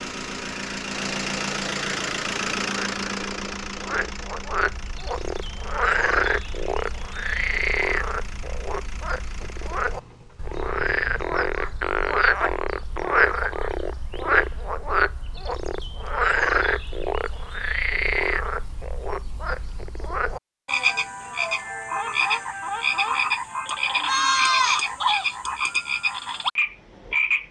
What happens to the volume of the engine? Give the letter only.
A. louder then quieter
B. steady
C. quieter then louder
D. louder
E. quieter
E.